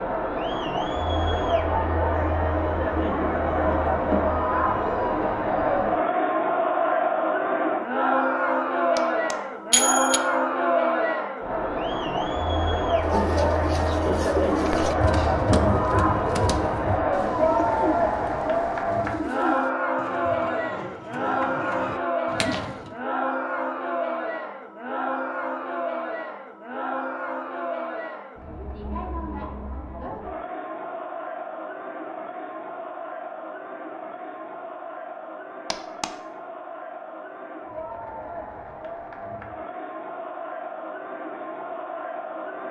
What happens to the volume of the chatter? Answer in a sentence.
The volume of the chatter goes down.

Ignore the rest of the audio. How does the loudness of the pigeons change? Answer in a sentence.
The loudness of the pigeons goes down.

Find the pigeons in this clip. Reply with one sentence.
You can hear the pigeons from 12.9 to 22.9 s.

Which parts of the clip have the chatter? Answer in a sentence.
The chatter can be heard from 0.0 to 42.6 s.